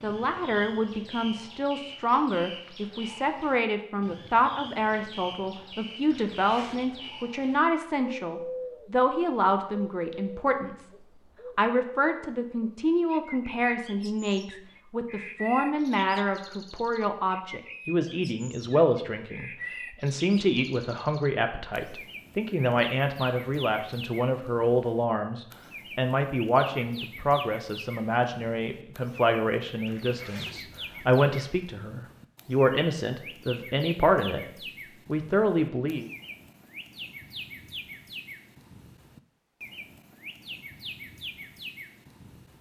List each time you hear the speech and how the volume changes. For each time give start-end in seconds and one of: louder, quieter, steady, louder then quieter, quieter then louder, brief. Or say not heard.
0.0-10.9 steady
11.6-34.5 steady
35.0-36.1 brief.